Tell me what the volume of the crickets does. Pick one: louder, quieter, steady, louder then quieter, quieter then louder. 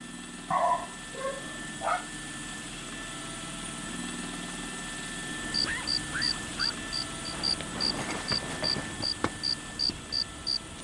steady.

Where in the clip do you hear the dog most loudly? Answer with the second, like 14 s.
1 s.